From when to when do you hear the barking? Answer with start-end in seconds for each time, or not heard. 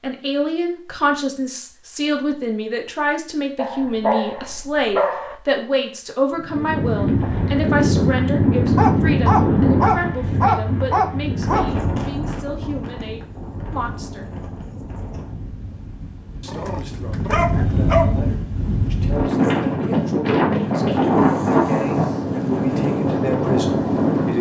3.5-5.3, 8.8-11.7, 16.4-18.2.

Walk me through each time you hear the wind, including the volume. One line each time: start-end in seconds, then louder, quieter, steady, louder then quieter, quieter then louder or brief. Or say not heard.
6.3-24.3 quieter then louder.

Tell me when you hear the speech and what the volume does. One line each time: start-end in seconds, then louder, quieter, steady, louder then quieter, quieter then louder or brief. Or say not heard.
0.0-14.3 quieter
16.4-24.3 louder.